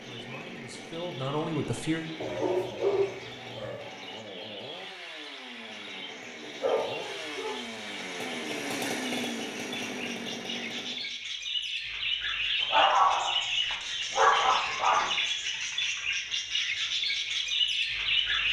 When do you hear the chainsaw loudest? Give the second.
9 s.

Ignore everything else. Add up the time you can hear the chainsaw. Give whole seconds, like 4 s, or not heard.
11 s.